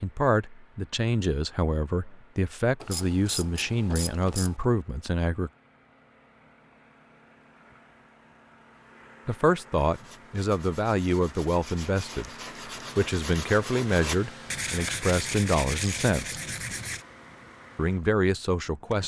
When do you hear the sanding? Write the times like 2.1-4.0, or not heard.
9.8-17.1.